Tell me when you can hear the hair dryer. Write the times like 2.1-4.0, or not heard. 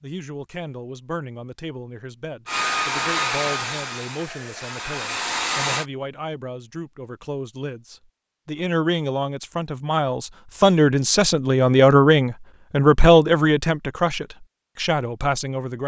2.5-5.8.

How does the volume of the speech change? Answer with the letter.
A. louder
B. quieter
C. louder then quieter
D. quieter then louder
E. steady
A.